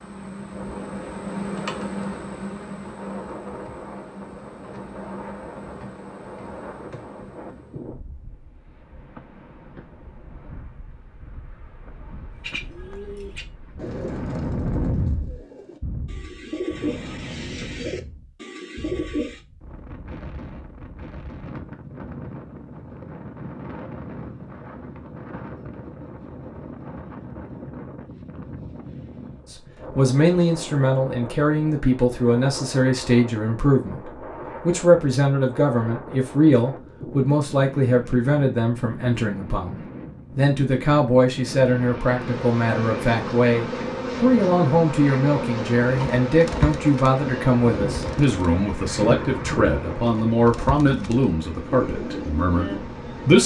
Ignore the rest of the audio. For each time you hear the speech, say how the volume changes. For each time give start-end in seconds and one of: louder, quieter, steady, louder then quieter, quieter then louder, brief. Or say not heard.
29.5-53.4 steady.